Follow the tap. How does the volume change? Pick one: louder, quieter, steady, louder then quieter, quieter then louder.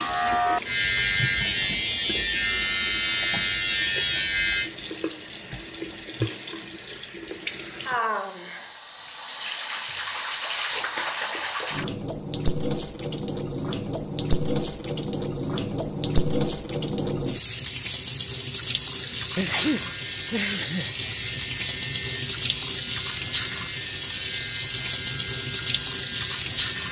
louder.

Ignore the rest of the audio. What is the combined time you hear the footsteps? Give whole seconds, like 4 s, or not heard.
not heard.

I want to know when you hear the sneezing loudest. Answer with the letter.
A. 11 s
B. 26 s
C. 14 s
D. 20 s
D.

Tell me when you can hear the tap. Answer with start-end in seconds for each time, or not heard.
0.0-26.8.